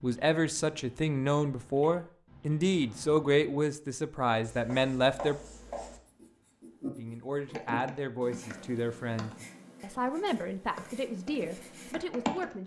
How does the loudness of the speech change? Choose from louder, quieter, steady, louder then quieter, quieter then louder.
quieter.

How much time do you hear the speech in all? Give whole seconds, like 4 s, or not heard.
11 s.